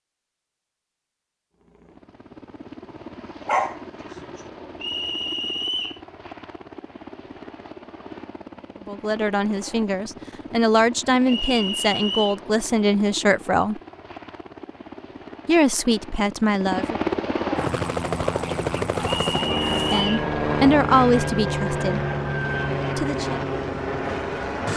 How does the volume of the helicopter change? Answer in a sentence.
The loudness of the helicopter goes up.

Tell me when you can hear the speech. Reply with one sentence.
The speech can be heard from 8.8 to 13.8 s, from 15.4 to 16.9 s, from 19.7 to 22.0 s and from 22.9 to 23.4 s.